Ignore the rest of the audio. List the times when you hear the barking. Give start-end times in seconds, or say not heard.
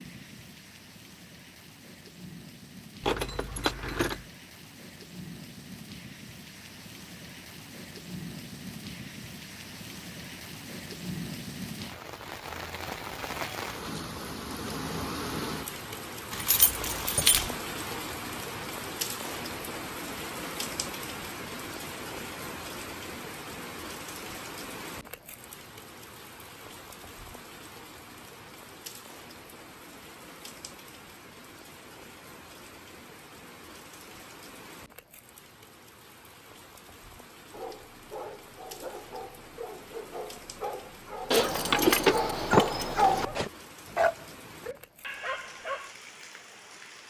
37.5-46.0.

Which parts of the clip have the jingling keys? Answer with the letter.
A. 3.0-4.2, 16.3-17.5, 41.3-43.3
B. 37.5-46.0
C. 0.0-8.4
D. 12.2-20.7
A.